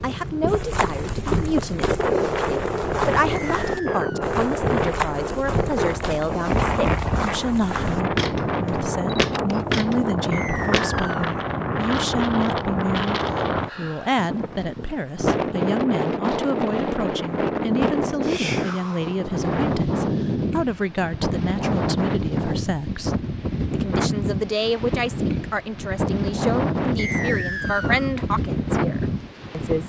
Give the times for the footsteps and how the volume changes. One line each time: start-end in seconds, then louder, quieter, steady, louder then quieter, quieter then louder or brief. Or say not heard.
0.5-10.9 louder.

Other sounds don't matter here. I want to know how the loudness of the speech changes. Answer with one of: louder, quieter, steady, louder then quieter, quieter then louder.
steady.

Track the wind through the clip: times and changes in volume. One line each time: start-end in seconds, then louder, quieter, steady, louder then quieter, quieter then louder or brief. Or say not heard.
0.0-29.8 steady.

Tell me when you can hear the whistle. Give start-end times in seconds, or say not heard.
3.3-4.3, 10.3-11.3, 26.9-28.1.